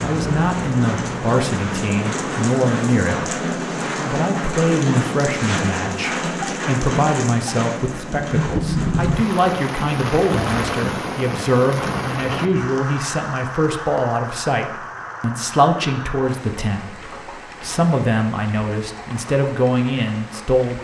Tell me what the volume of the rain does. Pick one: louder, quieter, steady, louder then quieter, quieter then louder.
quieter.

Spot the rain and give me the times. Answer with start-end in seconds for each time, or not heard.
0.0-20.7.